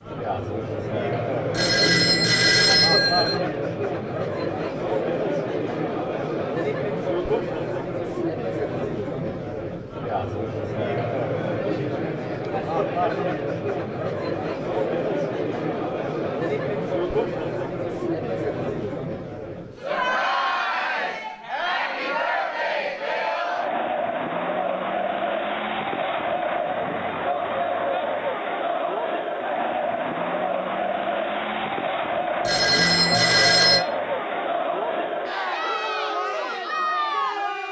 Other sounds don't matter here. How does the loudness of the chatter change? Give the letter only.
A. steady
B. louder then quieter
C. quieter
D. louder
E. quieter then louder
A.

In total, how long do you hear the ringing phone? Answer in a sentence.
The ringing phone can be heard for 3 seconds in total.